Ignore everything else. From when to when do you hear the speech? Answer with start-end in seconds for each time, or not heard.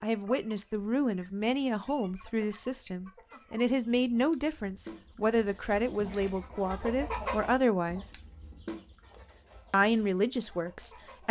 0.0-8.1, 9.7-11.2.